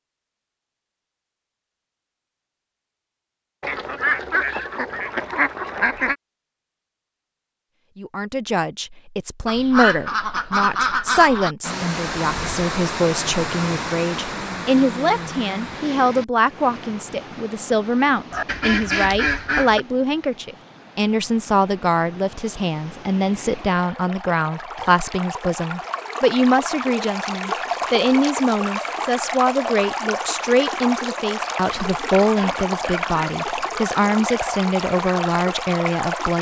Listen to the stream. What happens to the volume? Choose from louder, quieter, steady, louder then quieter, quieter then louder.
quieter then louder.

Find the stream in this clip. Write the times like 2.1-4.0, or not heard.
11.6-36.3.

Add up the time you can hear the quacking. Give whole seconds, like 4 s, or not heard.
8 s.